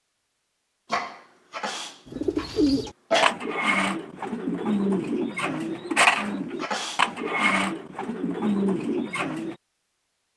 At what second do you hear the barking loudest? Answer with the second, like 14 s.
3 s.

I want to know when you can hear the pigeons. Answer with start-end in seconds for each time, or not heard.
2.0-9.6.